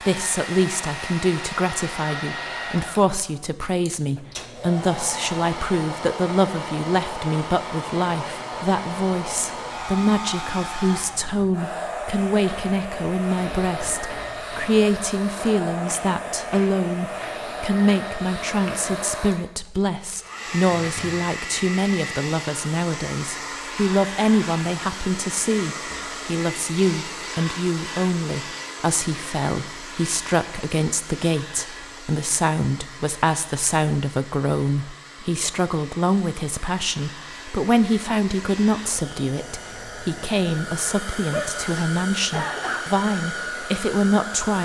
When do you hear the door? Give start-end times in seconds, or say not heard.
not heard.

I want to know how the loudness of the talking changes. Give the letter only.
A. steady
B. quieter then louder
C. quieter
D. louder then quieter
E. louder
A.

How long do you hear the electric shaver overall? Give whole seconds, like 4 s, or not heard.
not heard.